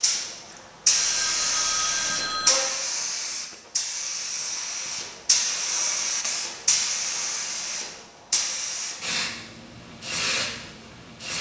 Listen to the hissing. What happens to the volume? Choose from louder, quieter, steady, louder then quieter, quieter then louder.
quieter.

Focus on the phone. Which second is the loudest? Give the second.
2 s.